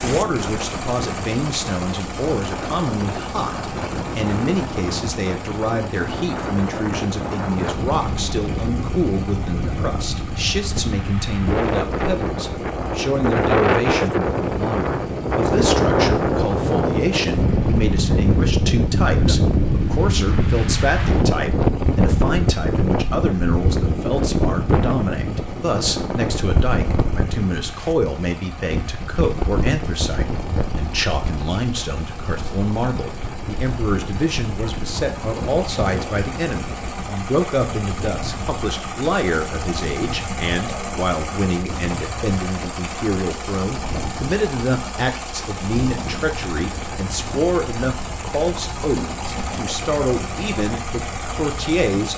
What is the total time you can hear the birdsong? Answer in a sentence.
The birdsong can't be heard in this clip.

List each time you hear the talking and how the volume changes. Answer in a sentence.
You can hear the talking from 0.0 to 52.1 s, at a steady volume.